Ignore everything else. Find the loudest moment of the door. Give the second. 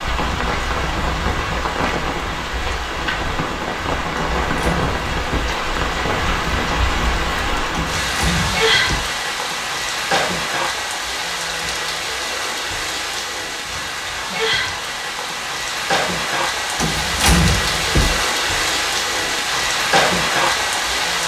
17 s.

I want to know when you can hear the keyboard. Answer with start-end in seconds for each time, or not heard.
not heard.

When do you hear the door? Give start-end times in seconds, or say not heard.
4.2-5.5, 7.7-9.1, 16.8-18.2.